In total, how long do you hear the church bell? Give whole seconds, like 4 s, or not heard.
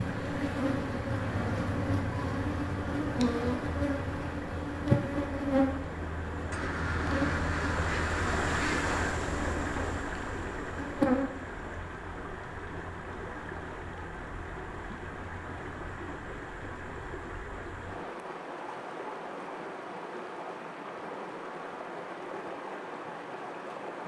not heard.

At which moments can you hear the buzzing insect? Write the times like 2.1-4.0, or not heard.
0.0-11.3.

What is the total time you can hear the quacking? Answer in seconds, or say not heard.
3 s.